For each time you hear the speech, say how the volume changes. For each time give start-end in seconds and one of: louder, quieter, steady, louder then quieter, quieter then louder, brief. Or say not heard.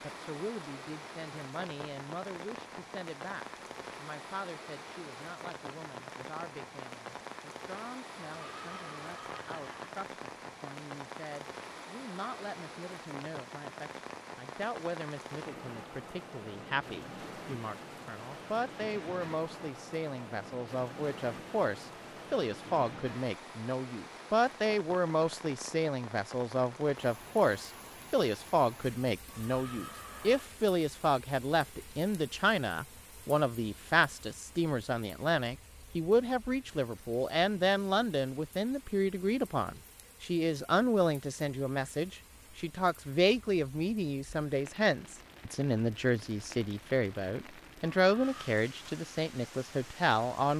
0.0-50.5 louder.